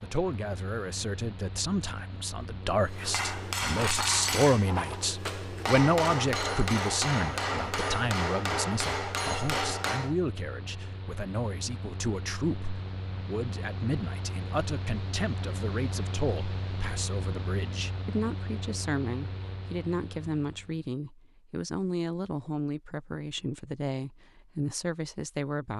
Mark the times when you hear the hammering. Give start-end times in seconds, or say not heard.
2.9-10.2.